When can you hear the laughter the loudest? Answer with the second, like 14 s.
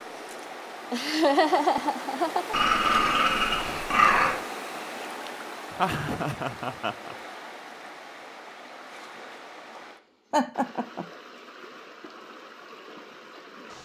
1 s.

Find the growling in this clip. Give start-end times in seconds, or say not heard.
2.5-4.4.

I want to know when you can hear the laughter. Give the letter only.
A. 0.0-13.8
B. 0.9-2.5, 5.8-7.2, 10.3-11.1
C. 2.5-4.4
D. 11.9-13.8
B.